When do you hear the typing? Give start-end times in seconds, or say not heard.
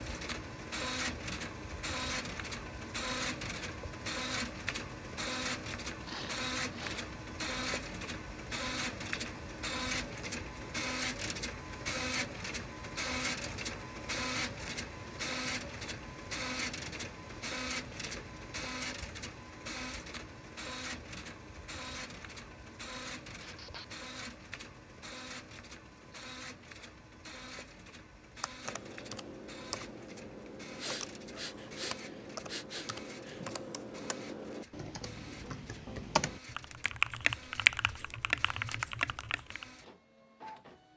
28.4-39.6.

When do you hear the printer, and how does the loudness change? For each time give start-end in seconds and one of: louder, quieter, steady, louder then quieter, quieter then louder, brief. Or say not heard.
0.0-40.9 quieter.